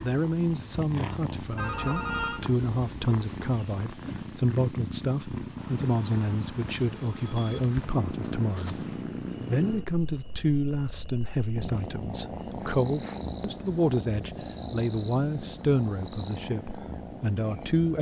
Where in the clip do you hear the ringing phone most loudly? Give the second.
2 s.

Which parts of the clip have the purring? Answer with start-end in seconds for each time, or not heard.
0.0-17.9.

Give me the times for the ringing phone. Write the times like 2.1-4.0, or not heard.
1.6-2.5, 6.8-7.6, 12.8-13.3.